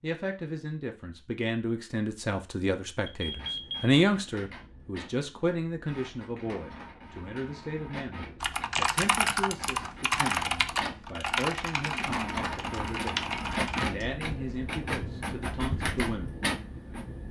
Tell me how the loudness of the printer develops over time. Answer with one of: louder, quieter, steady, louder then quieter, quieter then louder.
louder.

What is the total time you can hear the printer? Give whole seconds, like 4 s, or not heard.
14 s.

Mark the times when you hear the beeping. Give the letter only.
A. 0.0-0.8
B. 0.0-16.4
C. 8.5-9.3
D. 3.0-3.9
D.